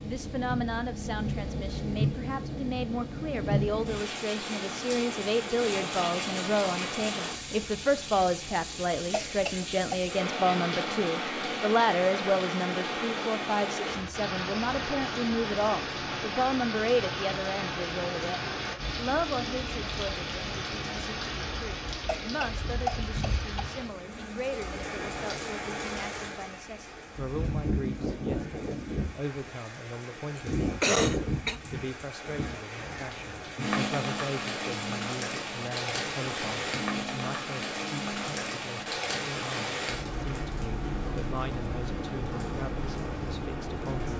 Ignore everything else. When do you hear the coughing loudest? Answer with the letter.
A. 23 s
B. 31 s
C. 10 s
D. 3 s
B.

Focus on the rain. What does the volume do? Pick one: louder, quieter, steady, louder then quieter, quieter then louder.
steady.